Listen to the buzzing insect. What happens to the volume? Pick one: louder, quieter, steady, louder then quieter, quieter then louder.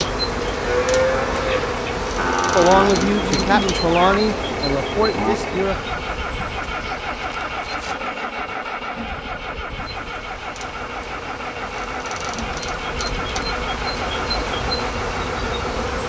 quieter then louder.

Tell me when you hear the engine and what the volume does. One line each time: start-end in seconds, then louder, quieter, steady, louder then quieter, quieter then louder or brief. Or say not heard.
0.1-16.0 steady.